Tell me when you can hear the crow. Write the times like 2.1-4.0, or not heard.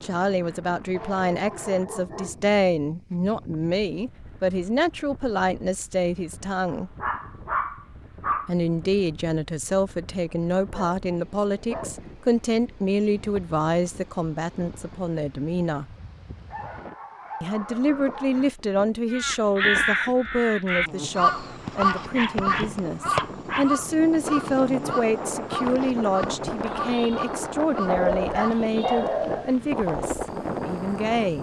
19.1-28.6.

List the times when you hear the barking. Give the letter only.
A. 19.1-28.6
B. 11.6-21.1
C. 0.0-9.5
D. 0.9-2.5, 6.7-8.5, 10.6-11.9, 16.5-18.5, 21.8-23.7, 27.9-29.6
D.